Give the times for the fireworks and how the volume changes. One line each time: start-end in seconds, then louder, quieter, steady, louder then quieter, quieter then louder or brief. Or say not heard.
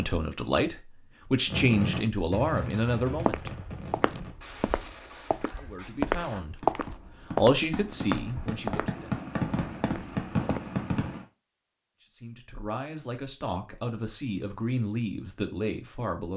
1.4-11.2 quieter then louder.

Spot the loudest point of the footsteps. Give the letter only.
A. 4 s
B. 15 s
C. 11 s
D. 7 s
D.